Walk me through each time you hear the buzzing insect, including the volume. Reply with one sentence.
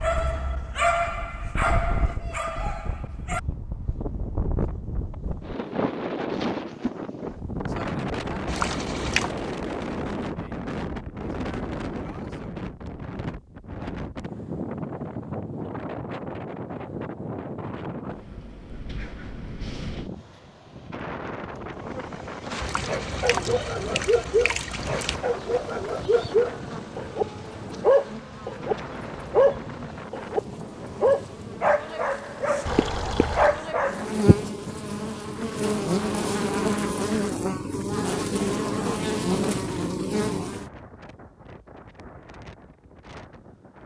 The buzzing insect can be heard from 21.7 to 40.7 s, getting louder.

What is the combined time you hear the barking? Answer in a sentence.
You can hear the barking for 14 seconds altogether.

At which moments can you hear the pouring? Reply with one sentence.
The pouring can be heard from 8.4 to 9.3 s, from 22.6 to 25.2 s and from 32.6 to 33.6 s.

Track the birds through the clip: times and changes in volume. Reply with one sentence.
You can't hear the birds here.